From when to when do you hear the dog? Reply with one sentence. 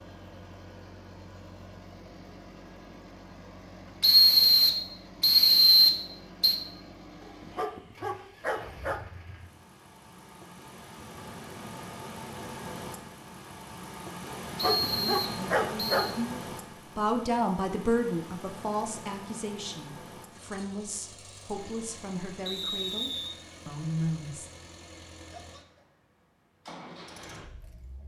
The dog can be heard from 7.2 to 9.0 s and from 14.2 to 16.1 s.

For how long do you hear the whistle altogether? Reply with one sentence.
The whistle can be heard for 5 seconds in total.